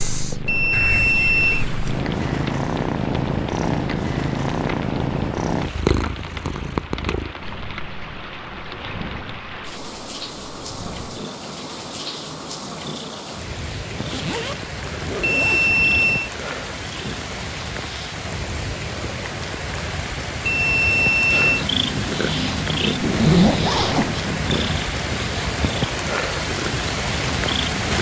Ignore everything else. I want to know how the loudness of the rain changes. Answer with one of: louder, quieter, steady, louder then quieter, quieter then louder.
louder.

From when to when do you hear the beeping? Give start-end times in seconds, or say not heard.
0.5-1.6, 15.2-16.3, 20.4-21.6.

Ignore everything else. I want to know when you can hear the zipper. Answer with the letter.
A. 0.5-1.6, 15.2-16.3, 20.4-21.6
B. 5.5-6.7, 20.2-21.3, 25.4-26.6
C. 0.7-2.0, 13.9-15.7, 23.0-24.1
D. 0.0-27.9
C.